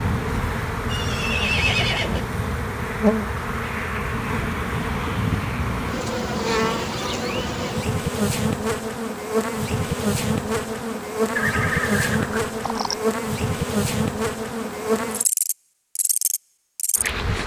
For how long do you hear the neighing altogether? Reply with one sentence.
You can hear the neighing for 3 seconds altogether.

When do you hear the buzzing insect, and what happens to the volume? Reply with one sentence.
The buzzing insect can be heard from 0.0 to 17.4 s, at a steady volume.